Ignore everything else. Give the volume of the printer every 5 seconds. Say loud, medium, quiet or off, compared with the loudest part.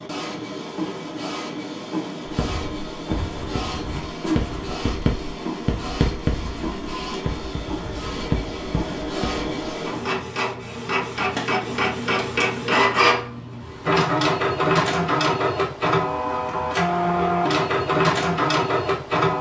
medium, medium, loud, loud.